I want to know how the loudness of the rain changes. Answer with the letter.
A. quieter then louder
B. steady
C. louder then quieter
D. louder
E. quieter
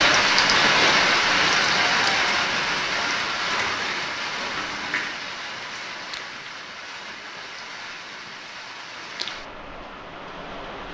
E.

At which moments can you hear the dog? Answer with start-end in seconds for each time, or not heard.
3.5-5.0.